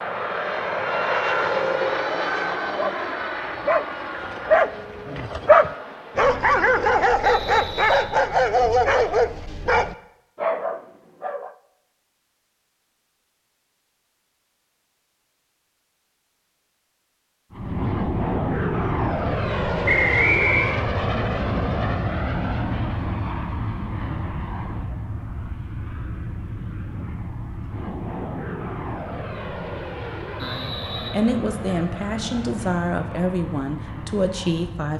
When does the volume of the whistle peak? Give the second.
20 s.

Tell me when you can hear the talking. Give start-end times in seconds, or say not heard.
30.4-34.9.